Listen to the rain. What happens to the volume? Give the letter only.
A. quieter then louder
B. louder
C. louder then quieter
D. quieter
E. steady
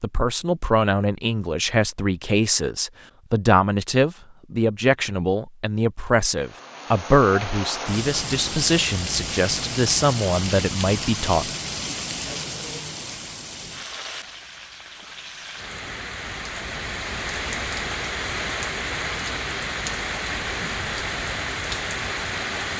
A.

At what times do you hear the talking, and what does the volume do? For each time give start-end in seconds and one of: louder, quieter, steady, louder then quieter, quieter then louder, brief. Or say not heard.
0.0-11.5 steady.